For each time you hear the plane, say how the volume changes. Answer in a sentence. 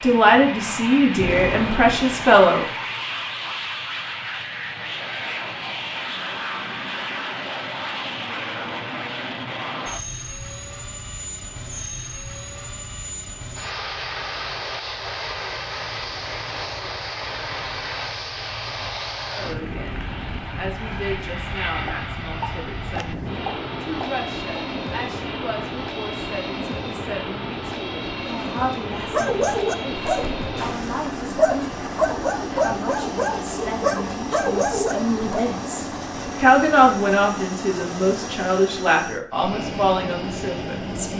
You can hear the plane from 0.0 to 41.1 s, at a steady volume.